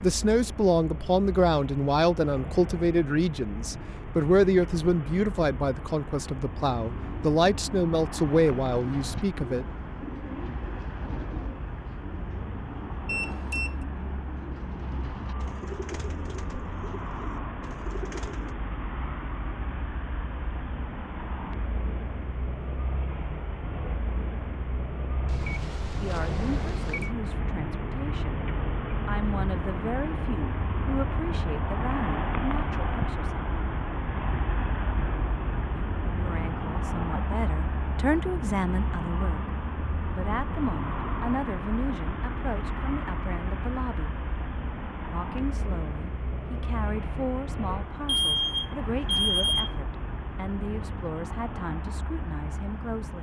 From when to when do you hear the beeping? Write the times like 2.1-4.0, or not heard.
13.1-13.8, 25.2-27.1, 48.0-49.8.